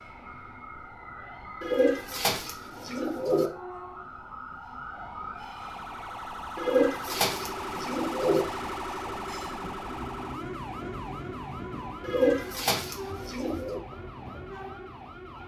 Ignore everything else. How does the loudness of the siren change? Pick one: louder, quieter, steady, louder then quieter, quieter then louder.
louder then quieter.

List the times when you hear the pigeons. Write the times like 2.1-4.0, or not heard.
1.6-3.5, 6.5-8.4, 12.0-13.8.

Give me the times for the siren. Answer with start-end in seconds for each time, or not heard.
0.0-15.4.